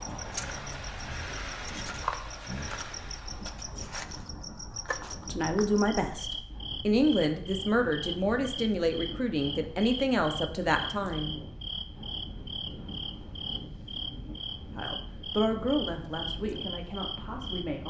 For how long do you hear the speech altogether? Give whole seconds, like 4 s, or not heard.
9 s.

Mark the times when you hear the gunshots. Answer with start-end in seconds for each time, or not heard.
not heard.